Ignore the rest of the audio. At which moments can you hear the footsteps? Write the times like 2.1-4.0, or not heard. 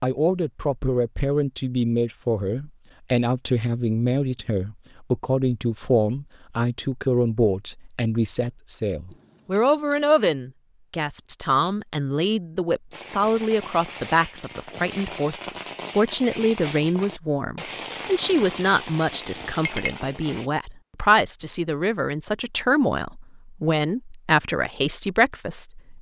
not heard.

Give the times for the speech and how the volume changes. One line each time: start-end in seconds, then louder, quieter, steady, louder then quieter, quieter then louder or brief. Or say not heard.
0.0-25.9 steady.